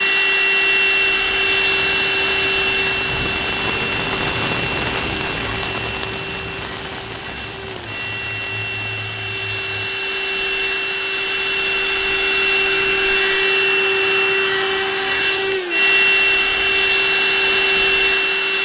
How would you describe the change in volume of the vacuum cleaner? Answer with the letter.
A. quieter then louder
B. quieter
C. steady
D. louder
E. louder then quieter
A.